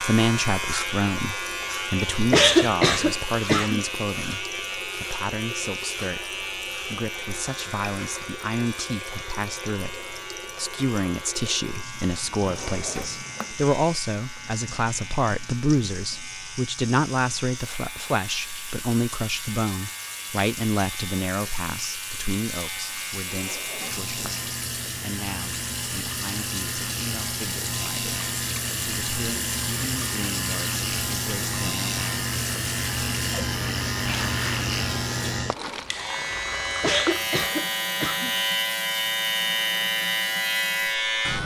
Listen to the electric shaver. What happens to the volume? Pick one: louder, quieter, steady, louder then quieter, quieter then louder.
quieter then louder.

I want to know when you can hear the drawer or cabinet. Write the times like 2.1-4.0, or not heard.
12.3-13.6, 23.2-24.5.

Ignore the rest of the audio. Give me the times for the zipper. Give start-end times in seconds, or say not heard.
not heard.